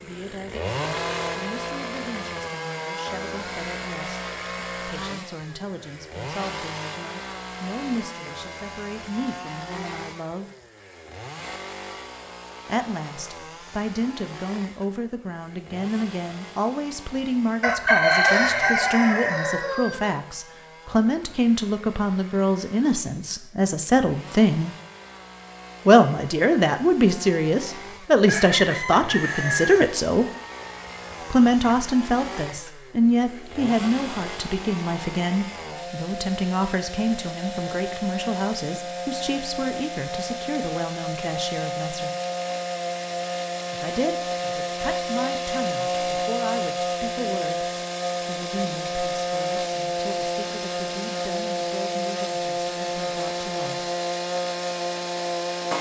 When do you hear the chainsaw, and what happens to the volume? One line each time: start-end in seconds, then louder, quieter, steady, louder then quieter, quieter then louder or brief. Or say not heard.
0.0-55.7 quieter then louder.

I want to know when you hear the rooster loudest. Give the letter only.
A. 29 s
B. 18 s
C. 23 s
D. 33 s
B.